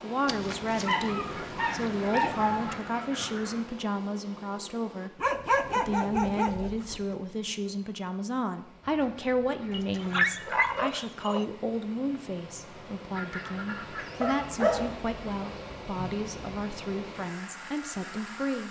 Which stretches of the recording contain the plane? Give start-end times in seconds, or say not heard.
not heard.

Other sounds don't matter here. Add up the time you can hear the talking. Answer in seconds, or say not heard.
18 s.